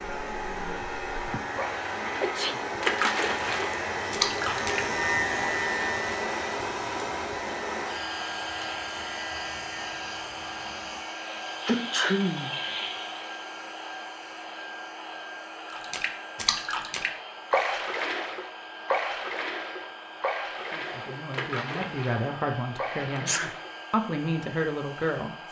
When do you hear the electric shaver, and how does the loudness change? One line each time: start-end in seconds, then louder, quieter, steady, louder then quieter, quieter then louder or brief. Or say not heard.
0.0-11.0 louder then quieter.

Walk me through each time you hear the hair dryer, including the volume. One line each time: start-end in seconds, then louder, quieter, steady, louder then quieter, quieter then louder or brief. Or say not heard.
0.0-25.4 quieter.